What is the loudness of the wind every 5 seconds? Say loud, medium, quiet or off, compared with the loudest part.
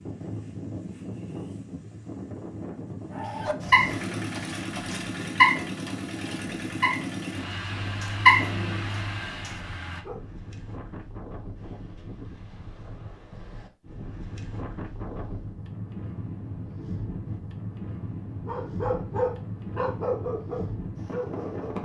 loud, medium, medium, loud, loud.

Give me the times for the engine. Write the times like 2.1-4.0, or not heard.
3.5-10.1.